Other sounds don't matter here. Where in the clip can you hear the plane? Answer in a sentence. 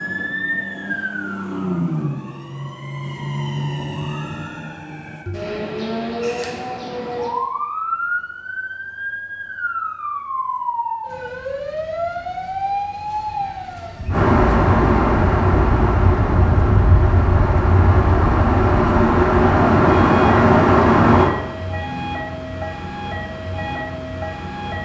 The plane can be heard from 14.1 to 21.3 s.